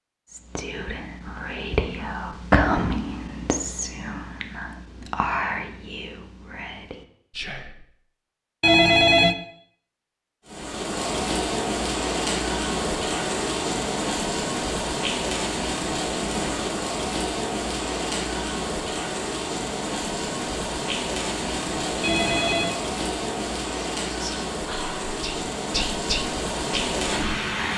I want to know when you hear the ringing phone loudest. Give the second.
9 s.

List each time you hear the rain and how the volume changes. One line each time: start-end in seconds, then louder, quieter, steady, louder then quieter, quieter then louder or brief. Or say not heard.
10.4-27.7 steady.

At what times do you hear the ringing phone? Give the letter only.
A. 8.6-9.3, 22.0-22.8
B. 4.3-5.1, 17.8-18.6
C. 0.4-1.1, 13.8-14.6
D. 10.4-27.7
A.